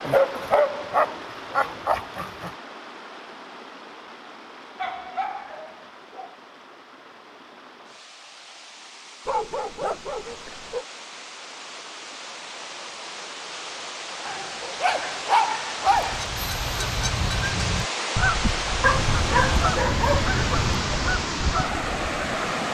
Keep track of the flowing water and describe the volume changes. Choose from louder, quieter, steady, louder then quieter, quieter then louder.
quieter then louder.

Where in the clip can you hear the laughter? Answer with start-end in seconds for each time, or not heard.
not heard.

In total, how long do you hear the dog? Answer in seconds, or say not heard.
10 s.